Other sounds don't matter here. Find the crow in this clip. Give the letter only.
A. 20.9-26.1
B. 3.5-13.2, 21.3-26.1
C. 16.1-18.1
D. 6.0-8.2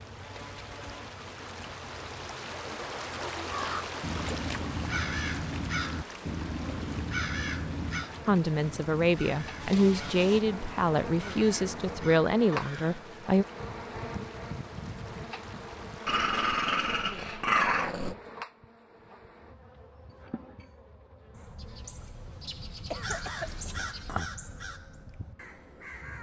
B.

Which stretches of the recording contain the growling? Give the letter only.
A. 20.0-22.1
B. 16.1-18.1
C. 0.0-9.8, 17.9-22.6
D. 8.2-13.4
B.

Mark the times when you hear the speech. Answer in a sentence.
The speech can be heard from 8.2 to 13.4 s.